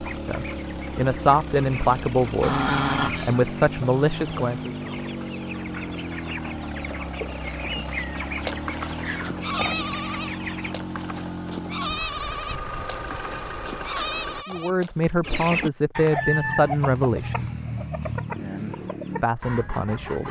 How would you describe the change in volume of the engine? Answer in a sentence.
The volume of the engine stays about the same.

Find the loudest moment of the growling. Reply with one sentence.
The volume of the growling peaks at 3 seconds.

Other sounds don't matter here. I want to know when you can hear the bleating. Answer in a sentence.
The bleating can be heard from 7.5 to 15.2 s.